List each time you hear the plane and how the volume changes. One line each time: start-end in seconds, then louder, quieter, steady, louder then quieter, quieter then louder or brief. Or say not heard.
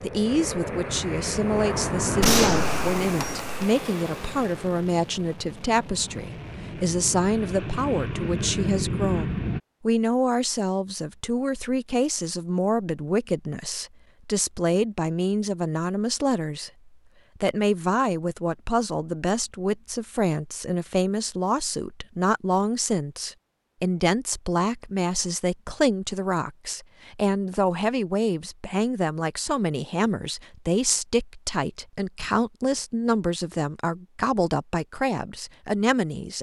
0.0-9.6 quieter then louder.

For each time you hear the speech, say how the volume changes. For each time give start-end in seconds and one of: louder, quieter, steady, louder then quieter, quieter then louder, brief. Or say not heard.
0.0-36.3 steady.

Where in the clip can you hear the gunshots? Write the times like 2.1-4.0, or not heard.
2.2-3.7.